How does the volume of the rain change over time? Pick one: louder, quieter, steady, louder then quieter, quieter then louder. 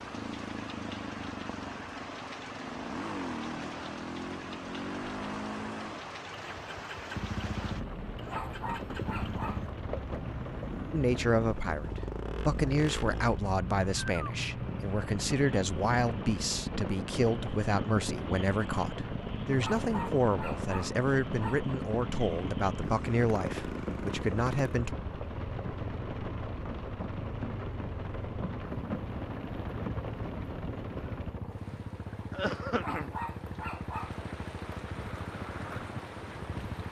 steady.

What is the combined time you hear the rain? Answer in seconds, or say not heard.
37 s.